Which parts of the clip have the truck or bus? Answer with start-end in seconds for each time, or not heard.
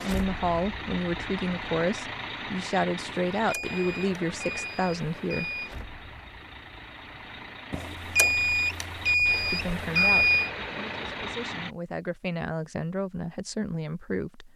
0.0-11.8.